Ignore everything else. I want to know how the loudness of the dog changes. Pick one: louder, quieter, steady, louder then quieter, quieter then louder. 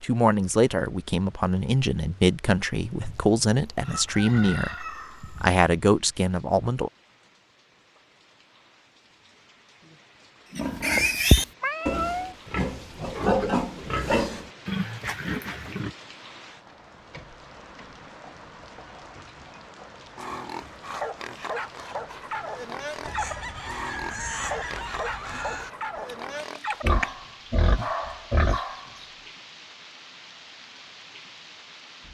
steady.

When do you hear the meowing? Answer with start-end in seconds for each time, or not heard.
11.6-12.3.